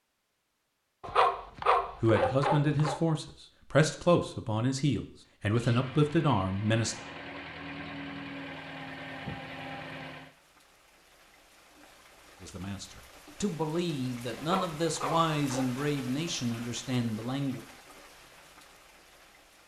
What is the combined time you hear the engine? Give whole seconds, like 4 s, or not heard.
5 s.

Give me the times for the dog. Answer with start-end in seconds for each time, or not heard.
1.0-3.0, 14.3-15.8.